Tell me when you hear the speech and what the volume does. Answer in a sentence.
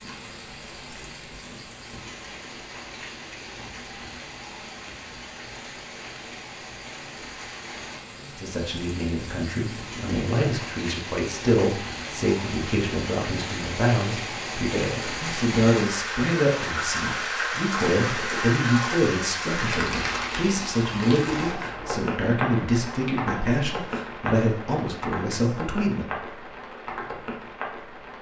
You can hear the speech from 8.2 to 26.1 s, at a steady volume.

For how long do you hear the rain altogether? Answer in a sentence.
You can hear the rain for 28 seconds altogether.